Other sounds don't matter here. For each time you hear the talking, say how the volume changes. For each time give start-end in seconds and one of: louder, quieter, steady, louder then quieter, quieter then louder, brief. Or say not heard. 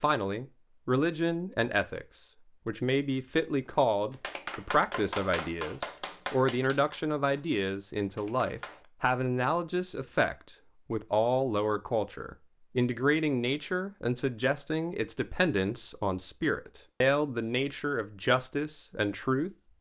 0.0-19.5 steady.